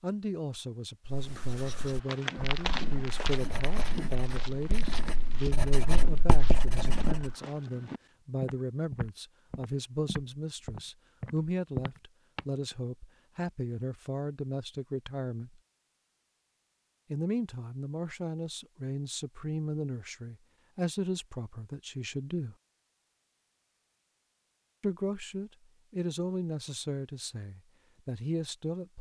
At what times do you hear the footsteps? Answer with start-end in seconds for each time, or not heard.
2.0-12.8.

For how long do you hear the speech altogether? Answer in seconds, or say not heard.
25 s.